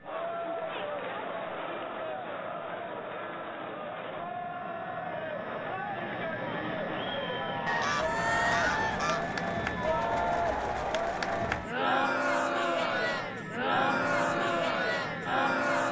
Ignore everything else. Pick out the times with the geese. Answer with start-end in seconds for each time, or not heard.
7.7-9.2.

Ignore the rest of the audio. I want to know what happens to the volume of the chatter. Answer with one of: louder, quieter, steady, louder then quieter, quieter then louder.
louder.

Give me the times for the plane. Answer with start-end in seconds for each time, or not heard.
0.0-15.8.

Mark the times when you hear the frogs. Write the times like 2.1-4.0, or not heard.
not heard.